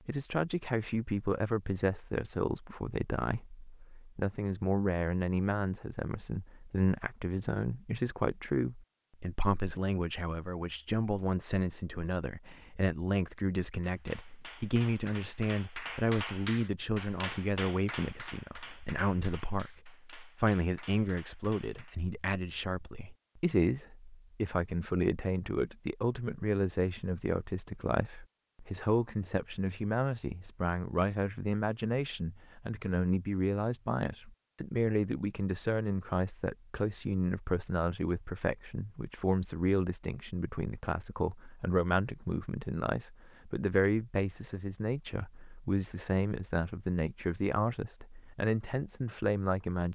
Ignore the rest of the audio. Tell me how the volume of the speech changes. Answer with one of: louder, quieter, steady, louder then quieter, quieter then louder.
steady.